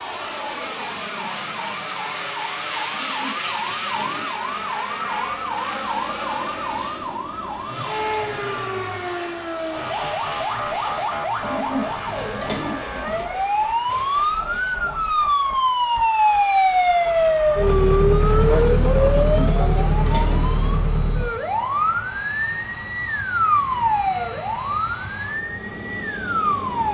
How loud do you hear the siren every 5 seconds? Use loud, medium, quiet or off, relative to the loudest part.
quiet, medium, medium, loud, medium, medium.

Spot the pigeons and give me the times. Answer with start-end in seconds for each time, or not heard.
2.9-4.7, 11.4-13.3, 19.1-20.6.